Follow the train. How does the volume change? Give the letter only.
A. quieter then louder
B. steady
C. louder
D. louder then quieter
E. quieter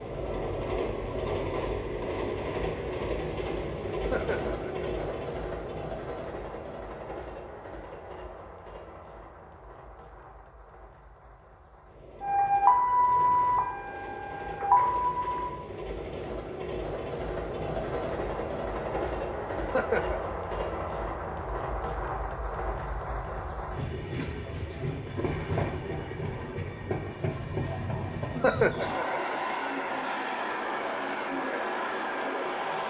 A.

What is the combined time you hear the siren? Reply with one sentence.
You can hear the siren for 3 seconds altogether.